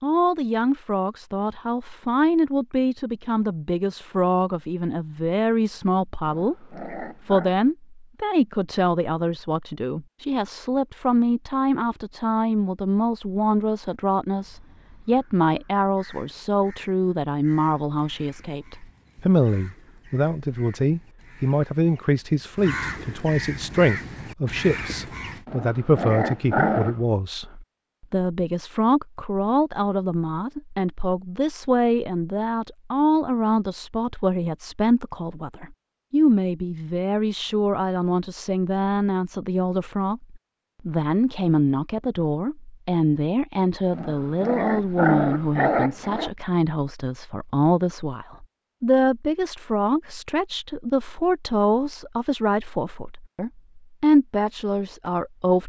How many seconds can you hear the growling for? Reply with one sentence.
The growling can be heard for 5 seconds in total.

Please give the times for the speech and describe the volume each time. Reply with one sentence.
The speech can be heard from 0.0 to 55.6 s, at a steady volume.